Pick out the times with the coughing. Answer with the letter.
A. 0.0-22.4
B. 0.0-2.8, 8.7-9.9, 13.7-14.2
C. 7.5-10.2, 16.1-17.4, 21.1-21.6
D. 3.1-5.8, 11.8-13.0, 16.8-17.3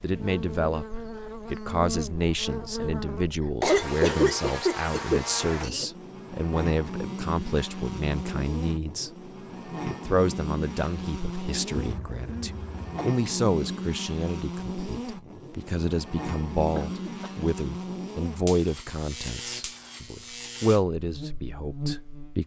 D.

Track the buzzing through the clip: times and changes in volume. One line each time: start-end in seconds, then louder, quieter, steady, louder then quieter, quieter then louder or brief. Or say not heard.
0.0-22.4 steady.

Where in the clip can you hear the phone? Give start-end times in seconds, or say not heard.
not heard.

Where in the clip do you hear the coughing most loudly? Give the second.
4 s.